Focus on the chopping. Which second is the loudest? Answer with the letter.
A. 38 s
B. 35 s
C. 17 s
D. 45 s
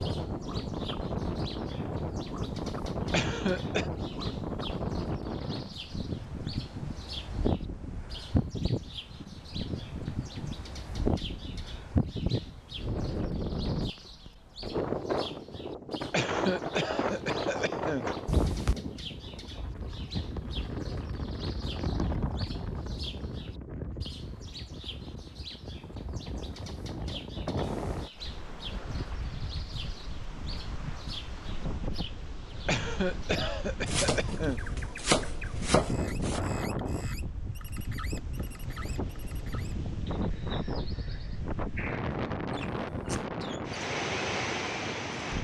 B.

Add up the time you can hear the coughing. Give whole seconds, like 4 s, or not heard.
5 s.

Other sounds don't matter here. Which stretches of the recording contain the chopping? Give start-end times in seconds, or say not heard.
33.9-36.4.